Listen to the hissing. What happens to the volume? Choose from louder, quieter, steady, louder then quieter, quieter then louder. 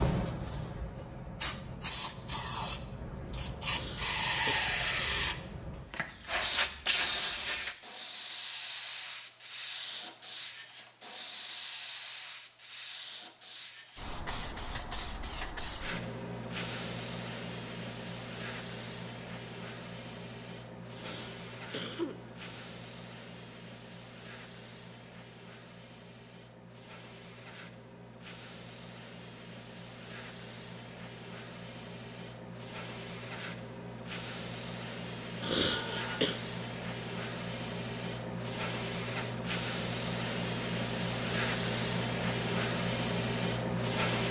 quieter then louder.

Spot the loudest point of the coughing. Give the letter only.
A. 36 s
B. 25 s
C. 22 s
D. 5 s
A.